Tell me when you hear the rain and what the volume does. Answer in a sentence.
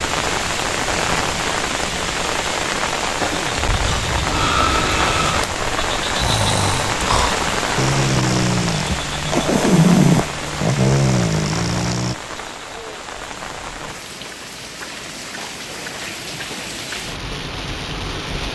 The rain can be heard from 0.0 to 18.5 s, getting quieter.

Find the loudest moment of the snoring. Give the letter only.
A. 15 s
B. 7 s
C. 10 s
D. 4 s
C.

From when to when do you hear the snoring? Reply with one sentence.
The snoring can be heard from 3.6 to 12.2 s.